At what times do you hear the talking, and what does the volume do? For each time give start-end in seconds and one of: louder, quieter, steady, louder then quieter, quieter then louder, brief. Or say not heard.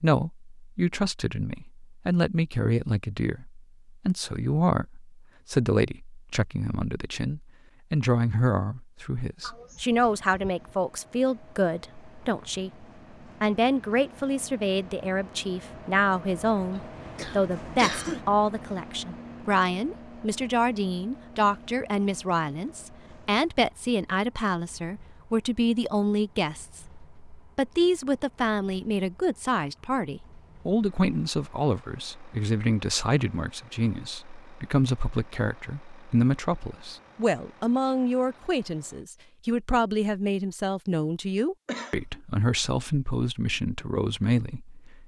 0.0-45.0 steady.